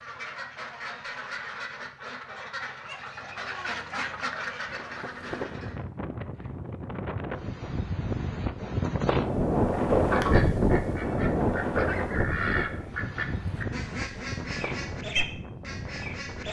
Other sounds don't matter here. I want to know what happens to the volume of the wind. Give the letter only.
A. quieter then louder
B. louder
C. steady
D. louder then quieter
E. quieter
D.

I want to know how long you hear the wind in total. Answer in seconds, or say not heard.
12 s.